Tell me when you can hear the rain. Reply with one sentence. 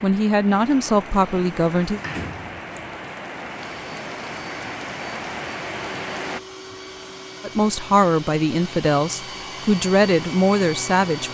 You can hear the rain from 0.0 to 6.4 s.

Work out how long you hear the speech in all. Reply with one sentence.
You can hear the speech for 6 seconds altogether.